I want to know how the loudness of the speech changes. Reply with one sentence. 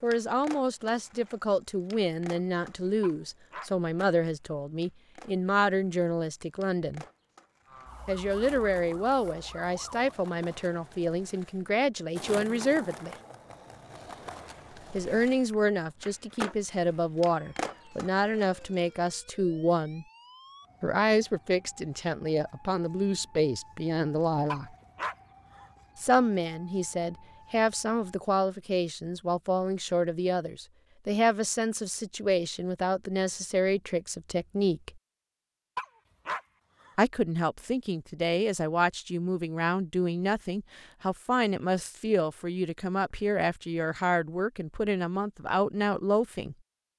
The volume of the speech stays about the same.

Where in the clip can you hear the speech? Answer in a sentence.
The speech can be heard from 0.0 to 7.0 s, from 8.1 to 13.2 s, from 14.9 to 20.1 s, from 20.8 to 24.7 s, from 25.9 to 34.9 s and from 37.0 to 46.5 s.